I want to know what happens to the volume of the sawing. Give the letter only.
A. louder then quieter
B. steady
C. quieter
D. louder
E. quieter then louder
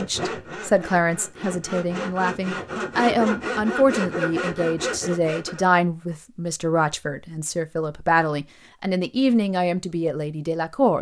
D.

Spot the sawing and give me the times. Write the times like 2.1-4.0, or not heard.
0.0-5.6.